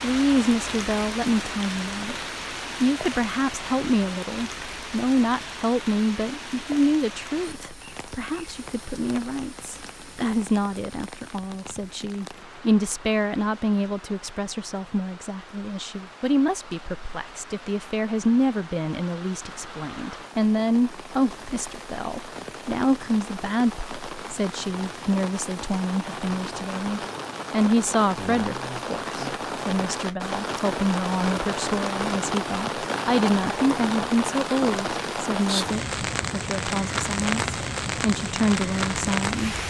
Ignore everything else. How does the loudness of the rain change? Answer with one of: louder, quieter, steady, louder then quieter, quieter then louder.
quieter then louder.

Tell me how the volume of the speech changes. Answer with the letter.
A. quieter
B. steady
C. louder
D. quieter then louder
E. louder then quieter
B.